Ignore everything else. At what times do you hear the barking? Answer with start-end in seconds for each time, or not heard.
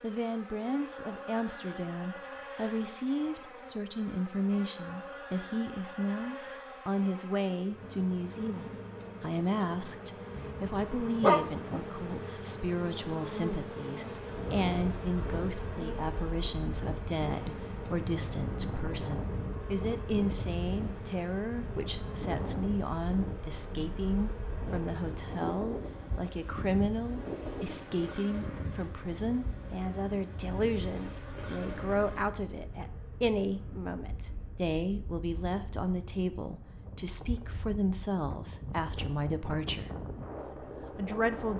10.3-11.6.